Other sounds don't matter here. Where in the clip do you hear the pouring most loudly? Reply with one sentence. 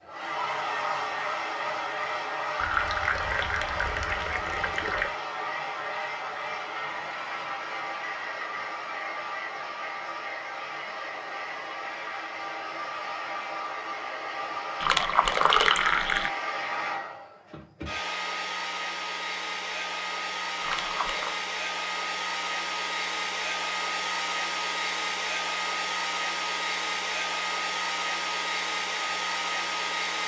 The volume of the pouring peaks at 16 seconds.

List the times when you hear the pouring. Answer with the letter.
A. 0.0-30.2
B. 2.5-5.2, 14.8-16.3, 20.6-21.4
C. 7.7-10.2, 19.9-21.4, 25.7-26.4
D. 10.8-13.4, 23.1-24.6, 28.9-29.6
B.